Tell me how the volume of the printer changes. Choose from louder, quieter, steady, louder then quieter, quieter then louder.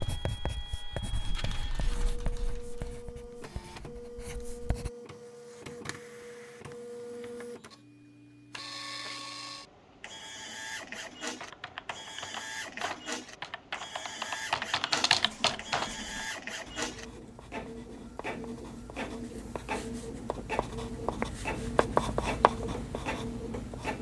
louder.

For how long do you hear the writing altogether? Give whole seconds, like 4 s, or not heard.
14 s.